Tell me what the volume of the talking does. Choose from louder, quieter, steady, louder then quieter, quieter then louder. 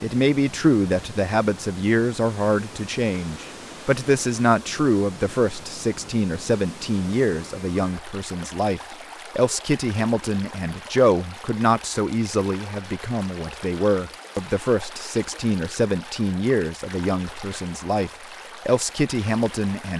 steady.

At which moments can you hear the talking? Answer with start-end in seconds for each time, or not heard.
0.0-19.9.